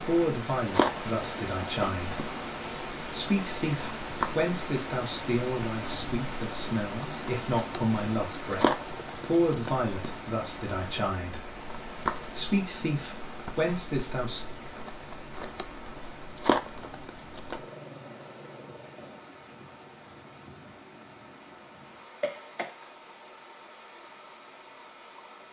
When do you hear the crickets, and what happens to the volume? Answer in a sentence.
You can hear the crickets from 0.0 to 17.6 s, at a steady volume.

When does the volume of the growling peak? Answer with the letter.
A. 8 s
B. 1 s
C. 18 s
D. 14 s
C.